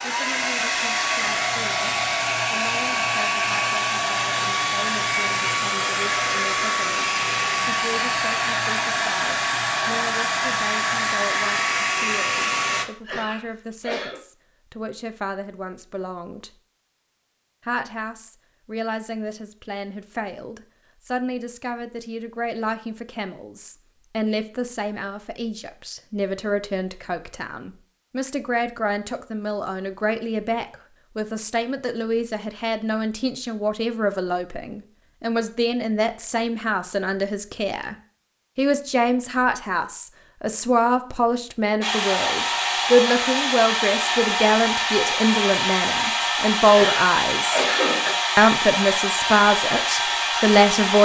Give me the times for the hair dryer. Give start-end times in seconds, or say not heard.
0.0-12.8, 41.8-50.9.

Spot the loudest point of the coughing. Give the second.
48 s.